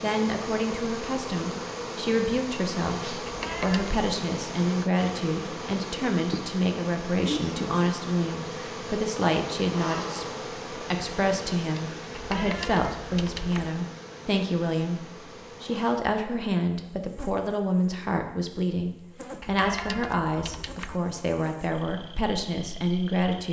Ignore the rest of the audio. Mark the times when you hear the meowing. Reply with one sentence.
The meowing can be heard from 3.2 to 4.0 s, from 12.1 to 13.7 s and from 19.4 to 21.0 s.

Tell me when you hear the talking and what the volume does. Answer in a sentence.
The talking can be heard from 0.0 to 23.4 s, at a steady volume.